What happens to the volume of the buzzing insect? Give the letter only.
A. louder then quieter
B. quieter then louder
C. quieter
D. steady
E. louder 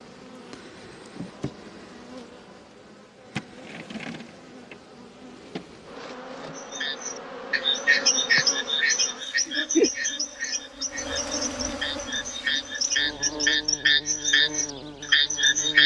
A.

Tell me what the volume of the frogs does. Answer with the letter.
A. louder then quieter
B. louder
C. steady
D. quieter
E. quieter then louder
E.